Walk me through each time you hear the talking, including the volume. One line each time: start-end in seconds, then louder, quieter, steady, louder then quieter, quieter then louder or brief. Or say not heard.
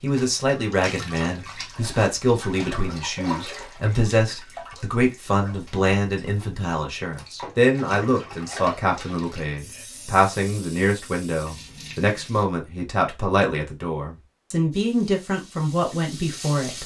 0.0-16.8 steady.